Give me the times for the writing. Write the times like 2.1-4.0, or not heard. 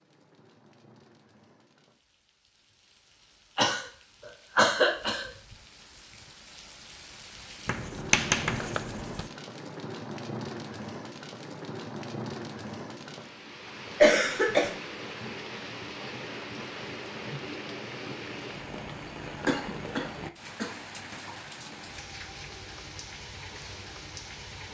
7.7-9.3.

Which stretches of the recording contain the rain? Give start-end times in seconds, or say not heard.
0.0-24.6.